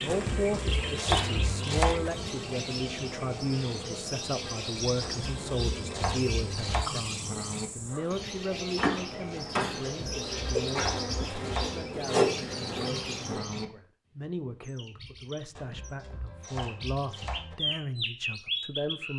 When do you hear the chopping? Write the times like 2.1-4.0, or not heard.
0.1-2.1, 5.0-6.8, 9.8-11.8, 15.6-17.6.